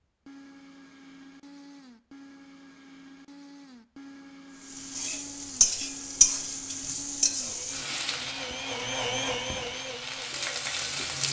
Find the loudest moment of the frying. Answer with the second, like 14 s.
6 s.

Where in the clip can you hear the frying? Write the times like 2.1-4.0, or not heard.
4.6-11.2.